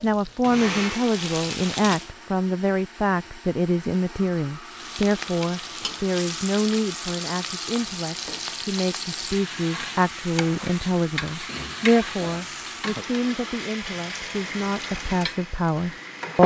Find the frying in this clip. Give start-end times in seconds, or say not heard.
0.0-2.1, 4.7-16.4.